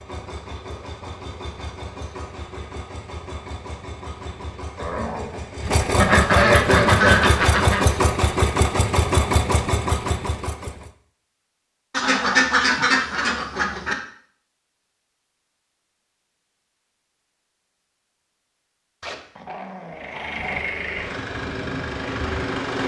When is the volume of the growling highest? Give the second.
5 s.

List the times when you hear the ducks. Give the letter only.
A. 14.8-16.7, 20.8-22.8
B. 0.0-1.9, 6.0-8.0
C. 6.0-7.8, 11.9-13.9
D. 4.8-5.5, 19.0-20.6
C.